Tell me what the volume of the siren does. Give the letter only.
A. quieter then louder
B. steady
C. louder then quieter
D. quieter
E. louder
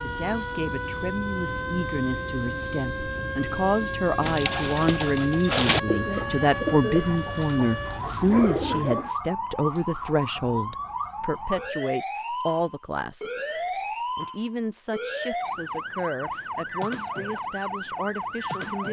B.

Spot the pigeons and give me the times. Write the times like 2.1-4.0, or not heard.
4.2-9.1.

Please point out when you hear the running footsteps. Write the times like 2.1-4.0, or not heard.
not heard.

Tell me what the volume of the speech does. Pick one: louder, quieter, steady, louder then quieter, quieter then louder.
louder then quieter.